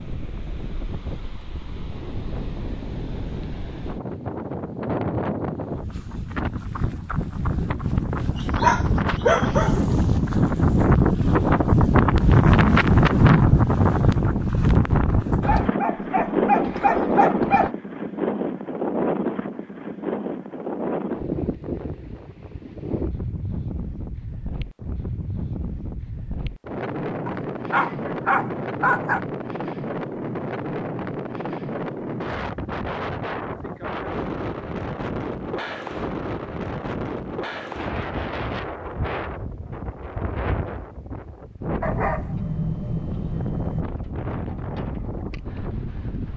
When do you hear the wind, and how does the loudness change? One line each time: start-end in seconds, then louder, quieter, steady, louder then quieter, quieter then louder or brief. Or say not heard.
0.0-46.3 louder then quieter.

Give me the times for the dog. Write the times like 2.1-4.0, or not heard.
8.3-9.8, 15.4-17.7, 27.2-29.2, 41.8-43.9.